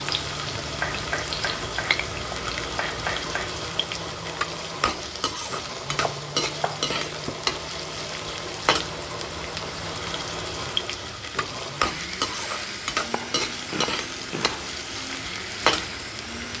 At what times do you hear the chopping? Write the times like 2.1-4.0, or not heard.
0.7-3.5, 6.0-7.4, 13.1-14.7.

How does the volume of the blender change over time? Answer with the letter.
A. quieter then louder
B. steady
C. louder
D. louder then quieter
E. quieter
B.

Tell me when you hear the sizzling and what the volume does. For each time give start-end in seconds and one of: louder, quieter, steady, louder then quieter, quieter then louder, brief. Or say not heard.
0.0-16.5 steady.